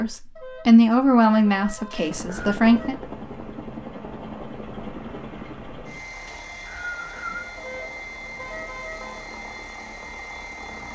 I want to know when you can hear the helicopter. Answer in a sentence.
You can hear the helicopter from 1.9 to 10.9 s.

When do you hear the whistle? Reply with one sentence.
You can hear the whistle from 1.9 to 2.6 s and from 6.2 to 7.5 s.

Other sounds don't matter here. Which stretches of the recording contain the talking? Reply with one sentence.
The talking can be heard from 0.0 to 3.0 s.